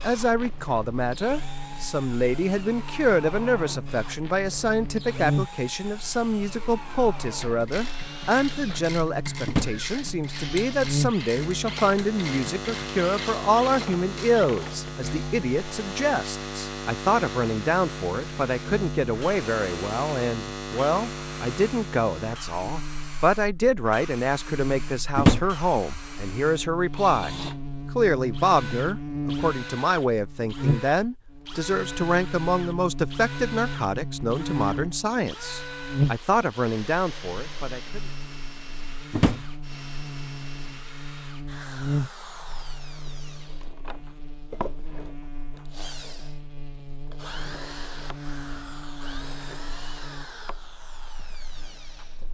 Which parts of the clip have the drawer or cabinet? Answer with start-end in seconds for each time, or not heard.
9.4-9.8, 25.1-25.6, 39.1-39.6.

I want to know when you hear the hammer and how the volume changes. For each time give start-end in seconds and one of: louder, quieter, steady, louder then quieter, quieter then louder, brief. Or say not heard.
not heard.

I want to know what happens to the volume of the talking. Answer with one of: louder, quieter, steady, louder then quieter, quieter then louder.
steady.